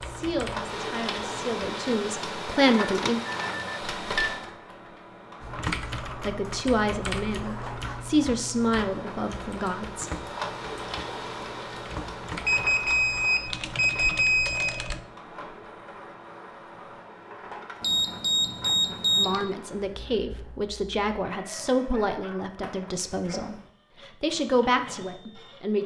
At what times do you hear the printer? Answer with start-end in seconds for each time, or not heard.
0.0-25.8.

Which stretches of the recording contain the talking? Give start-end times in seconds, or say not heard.
0.0-3.2, 6.2-10.2, 19.1-25.8.